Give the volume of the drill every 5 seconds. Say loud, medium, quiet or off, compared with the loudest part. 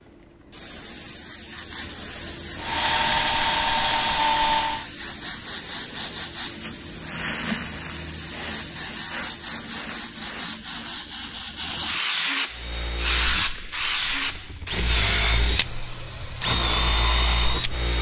loud, off, medium, loud.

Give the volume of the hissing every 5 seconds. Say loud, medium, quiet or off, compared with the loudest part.
medium, medium, loud, medium.